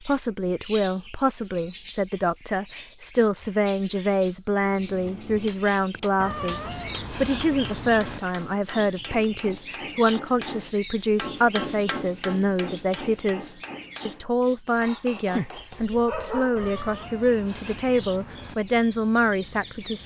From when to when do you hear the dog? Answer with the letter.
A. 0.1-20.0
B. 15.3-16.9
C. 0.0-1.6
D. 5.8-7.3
B.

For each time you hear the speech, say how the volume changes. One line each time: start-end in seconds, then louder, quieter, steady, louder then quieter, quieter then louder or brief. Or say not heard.
0.1-20.0 steady.